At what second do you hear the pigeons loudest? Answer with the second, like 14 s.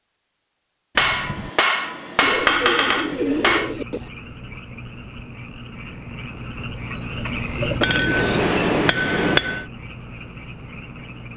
3 s.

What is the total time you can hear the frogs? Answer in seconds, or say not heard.
8 s.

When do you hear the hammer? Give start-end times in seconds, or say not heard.
0.9-3.8, 7.8-9.7.